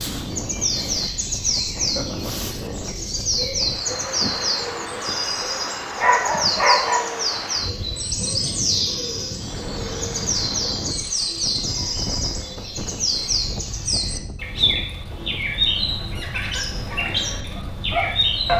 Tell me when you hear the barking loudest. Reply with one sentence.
The volume of the barking peaks at 7 seconds.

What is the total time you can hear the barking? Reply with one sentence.
The barking can be heard for 3 seconds in total.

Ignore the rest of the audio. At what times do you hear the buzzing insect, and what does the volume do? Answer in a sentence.
The buzzing insect can't be heard in this clip.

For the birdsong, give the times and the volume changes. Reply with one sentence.
The birdsong can be heard from 0.0 to 18.5 s, at a steady volume.